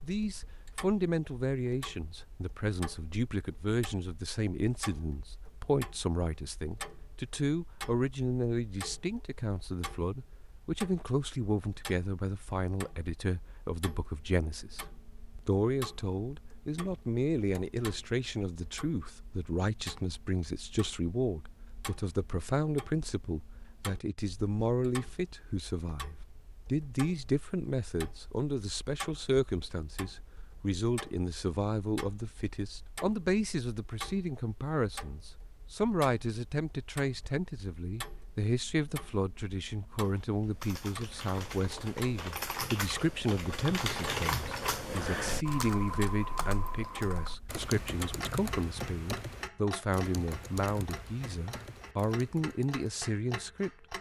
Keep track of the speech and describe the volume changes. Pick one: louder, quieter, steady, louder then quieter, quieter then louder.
steady.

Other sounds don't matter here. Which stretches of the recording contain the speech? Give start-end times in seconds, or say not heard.
0.0-53.9.